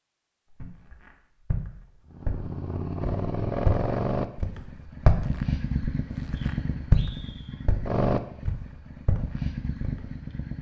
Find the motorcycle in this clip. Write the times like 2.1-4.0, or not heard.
2.1-10.5.